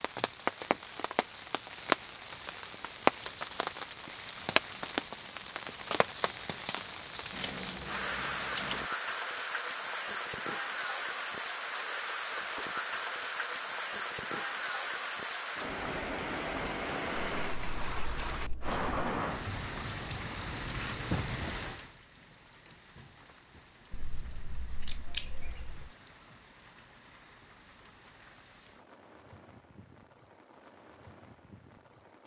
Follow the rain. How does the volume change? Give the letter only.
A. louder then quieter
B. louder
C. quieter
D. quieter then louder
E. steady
C.